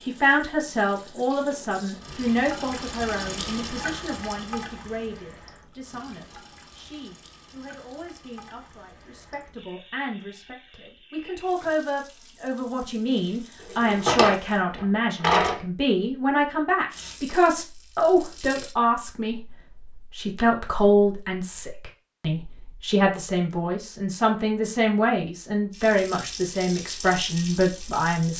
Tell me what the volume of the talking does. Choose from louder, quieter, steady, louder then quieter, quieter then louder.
quieter then louder.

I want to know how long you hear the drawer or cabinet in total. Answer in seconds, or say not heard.
2 s.